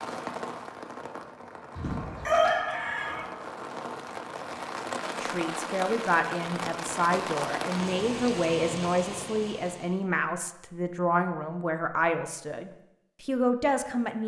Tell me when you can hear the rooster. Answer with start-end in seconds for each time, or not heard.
1.8-3.2.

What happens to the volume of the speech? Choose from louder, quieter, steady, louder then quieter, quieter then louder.
steady.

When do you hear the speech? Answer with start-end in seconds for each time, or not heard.
5.2-14.2.